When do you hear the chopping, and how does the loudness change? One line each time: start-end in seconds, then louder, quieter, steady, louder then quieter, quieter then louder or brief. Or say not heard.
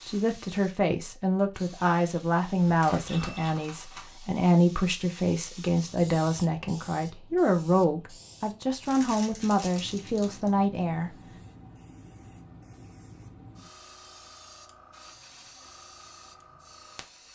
not heard.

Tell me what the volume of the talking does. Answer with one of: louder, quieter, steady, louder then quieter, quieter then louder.
steady.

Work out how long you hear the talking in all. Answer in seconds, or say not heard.
11 s.